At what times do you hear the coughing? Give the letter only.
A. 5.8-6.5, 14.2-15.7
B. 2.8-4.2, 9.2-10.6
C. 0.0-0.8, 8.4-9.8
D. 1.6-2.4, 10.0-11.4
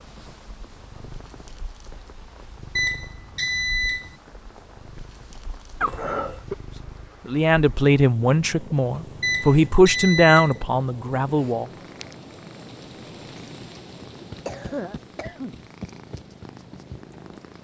A.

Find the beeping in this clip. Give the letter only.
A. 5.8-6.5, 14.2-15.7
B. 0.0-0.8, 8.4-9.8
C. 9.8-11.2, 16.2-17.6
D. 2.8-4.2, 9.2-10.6
D.